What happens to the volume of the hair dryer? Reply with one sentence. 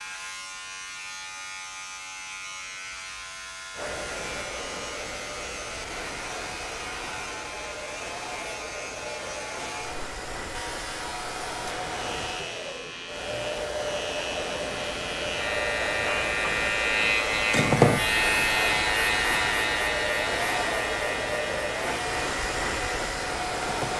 The loudness of the hair dryer goes up.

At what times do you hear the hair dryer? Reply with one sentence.
The hair dryer can be heard from 3.8 to 23.9 s.